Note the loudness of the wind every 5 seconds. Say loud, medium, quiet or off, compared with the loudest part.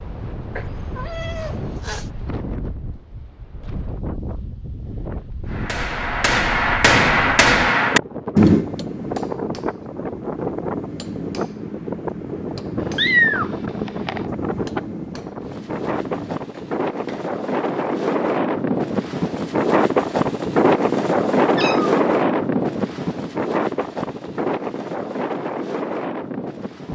quiet, medium, medium, loud, loud, medium.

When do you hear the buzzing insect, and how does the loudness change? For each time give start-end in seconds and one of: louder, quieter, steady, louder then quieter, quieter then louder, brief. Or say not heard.
not heard.